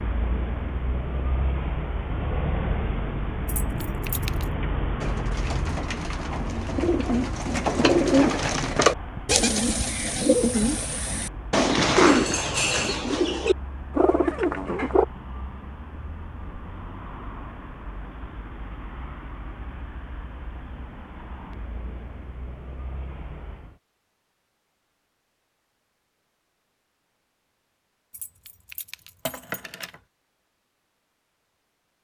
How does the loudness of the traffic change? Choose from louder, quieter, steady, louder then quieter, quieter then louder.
quieter.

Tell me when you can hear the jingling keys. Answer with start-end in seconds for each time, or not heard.
3.5-4.5, 28.1-30.0.